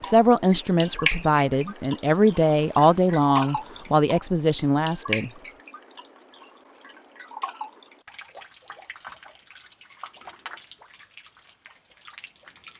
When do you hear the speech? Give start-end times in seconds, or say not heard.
0.0-5.3.